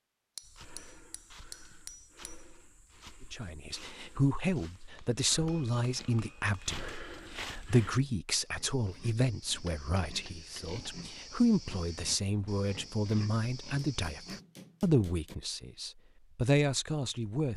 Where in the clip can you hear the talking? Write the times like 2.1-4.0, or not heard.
3.3-17.5.